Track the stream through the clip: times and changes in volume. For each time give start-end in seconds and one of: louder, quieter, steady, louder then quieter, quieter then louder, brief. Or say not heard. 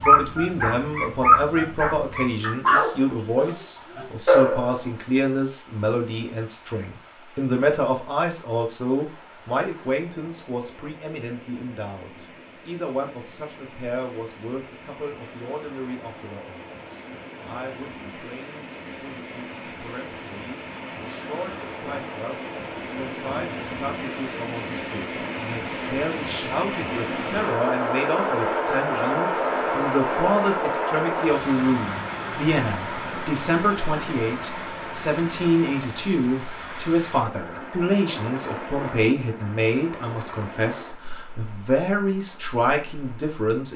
0.0-43.7 louder then quieter.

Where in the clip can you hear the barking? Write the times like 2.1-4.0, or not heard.
0.0-4.8.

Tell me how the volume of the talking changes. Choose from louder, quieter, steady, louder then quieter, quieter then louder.
quieter then louder.